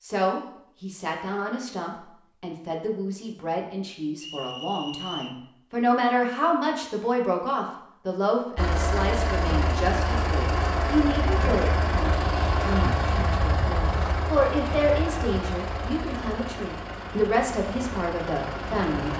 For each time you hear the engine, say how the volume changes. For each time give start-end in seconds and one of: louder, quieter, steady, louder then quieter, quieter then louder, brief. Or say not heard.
8.6-19.1 quieter.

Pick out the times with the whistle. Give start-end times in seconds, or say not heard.
4.2-5.4.